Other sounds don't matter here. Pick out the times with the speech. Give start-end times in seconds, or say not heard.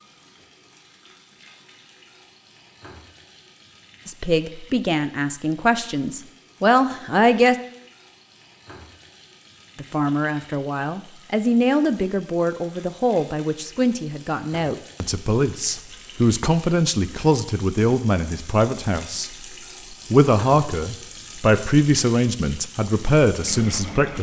4.0-7.5, 9.8-19.3, 20.1-24.1.